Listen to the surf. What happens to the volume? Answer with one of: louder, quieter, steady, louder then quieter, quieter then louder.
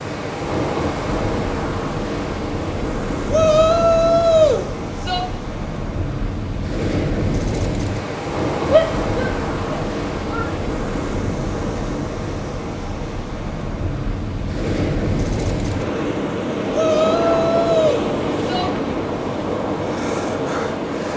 steady.